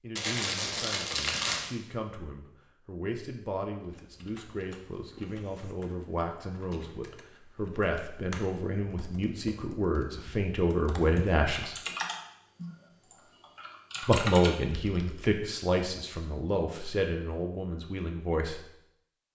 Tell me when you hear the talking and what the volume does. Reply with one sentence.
You can hear the talking from 0.0 to 11.8 s, getting louder; and from 14.0 to 18.7 s, getting quieter.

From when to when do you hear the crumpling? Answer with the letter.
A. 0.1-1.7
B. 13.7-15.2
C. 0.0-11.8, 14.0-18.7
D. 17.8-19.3
A.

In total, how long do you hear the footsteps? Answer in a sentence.
The footsteps can't be heard in this clip.